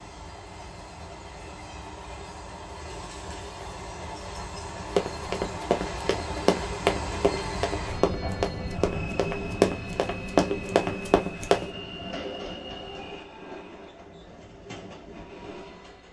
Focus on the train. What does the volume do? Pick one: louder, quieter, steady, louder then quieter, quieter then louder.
louder then quieter.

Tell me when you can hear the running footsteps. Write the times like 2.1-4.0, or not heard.
5.0-11.7.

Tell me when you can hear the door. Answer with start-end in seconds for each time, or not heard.
not heard.